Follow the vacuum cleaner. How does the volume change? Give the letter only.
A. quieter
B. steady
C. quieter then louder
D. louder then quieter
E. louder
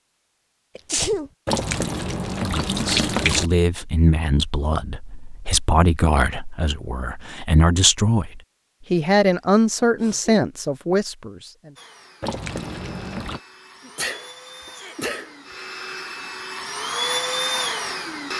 E.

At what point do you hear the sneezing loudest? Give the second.
1 s.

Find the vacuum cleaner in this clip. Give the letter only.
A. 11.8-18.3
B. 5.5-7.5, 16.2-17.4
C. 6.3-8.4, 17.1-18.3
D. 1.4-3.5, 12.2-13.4
A.